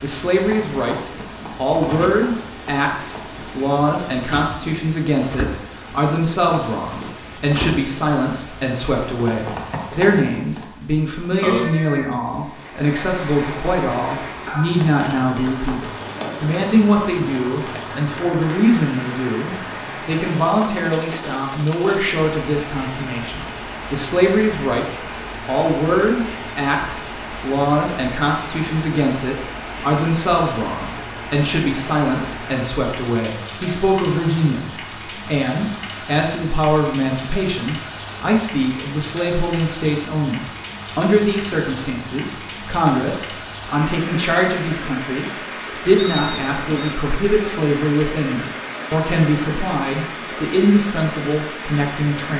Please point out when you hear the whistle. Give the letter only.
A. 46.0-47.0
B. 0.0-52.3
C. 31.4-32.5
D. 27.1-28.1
A.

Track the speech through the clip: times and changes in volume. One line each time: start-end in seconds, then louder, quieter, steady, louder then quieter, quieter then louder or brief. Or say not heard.
0.0-52.3 steady.